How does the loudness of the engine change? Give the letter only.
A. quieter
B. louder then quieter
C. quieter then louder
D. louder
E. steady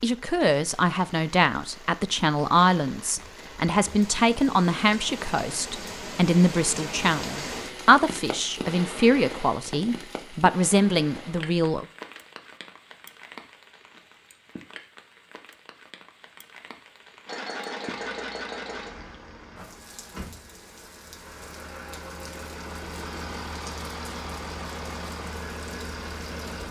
C.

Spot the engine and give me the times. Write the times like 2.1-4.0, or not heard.
17.2-26.6.